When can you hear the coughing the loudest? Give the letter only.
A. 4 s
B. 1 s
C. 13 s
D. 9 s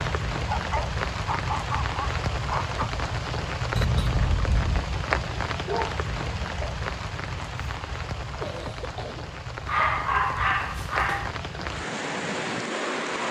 A.